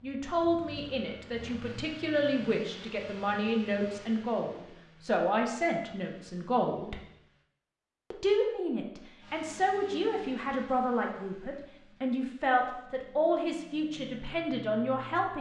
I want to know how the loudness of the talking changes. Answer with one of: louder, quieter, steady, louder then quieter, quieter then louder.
steady.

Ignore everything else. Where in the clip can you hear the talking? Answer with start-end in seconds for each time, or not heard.
0.0-7.0, 8.1-15.3.